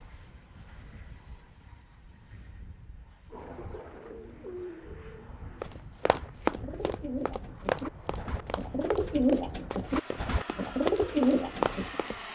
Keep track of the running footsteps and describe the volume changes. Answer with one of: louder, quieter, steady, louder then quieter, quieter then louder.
quieter then louder.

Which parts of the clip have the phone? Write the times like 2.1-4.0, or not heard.
not heard.